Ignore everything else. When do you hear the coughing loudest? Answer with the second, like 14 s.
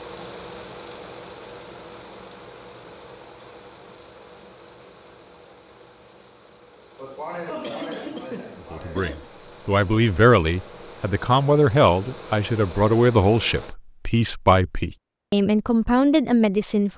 8 s.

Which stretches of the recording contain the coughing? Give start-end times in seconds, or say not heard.
7.0-9.3.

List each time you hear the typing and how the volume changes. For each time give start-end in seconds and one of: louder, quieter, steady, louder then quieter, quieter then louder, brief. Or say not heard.
not heard.